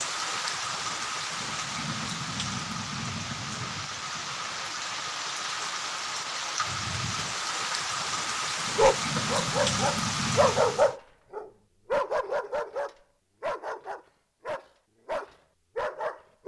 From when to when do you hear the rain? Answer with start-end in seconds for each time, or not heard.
0.0-10.9.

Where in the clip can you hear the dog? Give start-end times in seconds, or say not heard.
8.8-16.4.